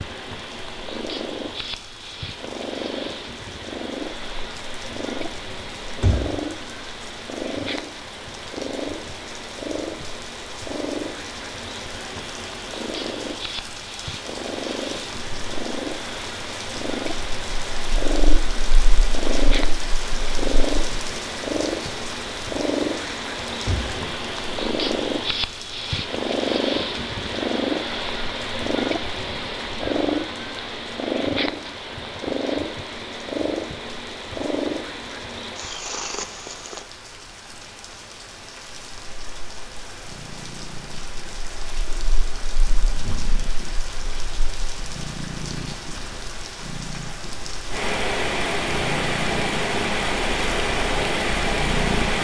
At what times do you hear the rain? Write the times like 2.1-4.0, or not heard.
0.0-52.1.